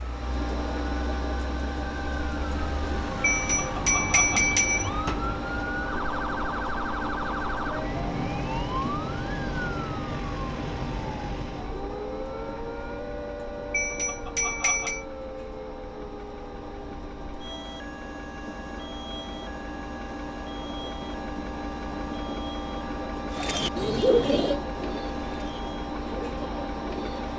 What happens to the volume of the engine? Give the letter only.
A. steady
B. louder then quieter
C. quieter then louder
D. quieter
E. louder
C.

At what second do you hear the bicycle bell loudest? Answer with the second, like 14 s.
4 s.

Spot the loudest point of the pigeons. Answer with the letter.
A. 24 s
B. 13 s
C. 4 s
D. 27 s
A.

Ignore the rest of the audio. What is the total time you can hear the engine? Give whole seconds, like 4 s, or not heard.
27 s.